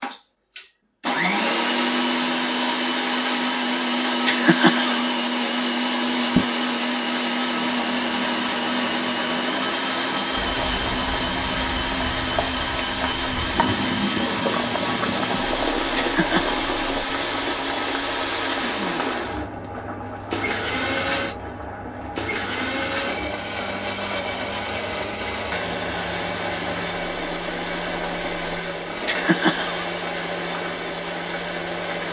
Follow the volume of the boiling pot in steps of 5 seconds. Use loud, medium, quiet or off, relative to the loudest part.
off, loud, loud, loud, medium, medium, medium.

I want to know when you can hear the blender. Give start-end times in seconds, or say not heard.
0.0-32.0.